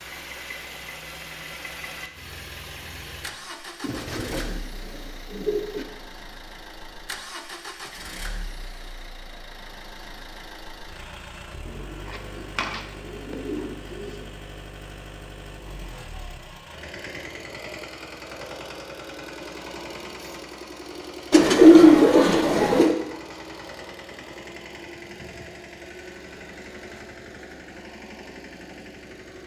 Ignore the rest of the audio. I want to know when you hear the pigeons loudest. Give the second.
22 s.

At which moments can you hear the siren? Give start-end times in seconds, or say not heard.
not heard.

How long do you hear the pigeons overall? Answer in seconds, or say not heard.
6 s.